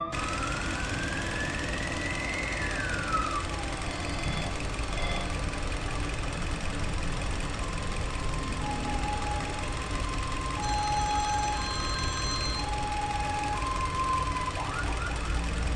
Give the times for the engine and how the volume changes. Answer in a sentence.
You can hear the engine from 0.0 to 15.7 s, at a steady volume.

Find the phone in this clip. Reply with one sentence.
You can hear the phone from 3.8 to 5.3 s and from 10.6 to 12.7 s.